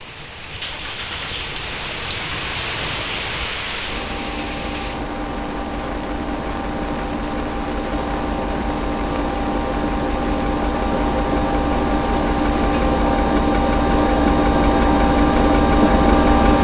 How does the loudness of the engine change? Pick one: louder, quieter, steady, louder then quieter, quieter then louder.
louder.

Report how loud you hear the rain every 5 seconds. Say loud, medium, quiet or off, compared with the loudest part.
loud, medium, medium, off.